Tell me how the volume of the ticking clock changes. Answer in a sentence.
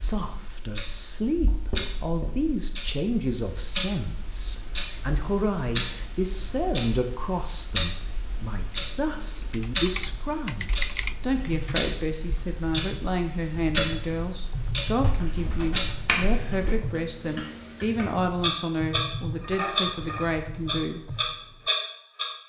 The loudness of the ticking clock goes up.